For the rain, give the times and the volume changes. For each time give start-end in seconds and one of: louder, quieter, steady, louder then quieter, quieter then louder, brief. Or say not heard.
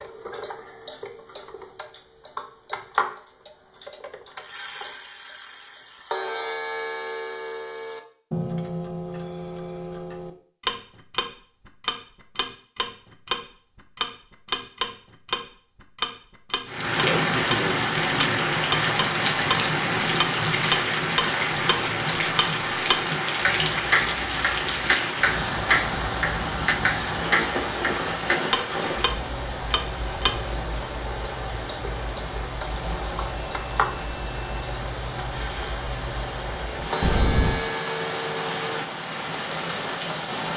16.6-40.5 quieter.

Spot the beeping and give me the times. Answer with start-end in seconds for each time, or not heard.
33.4-34.8.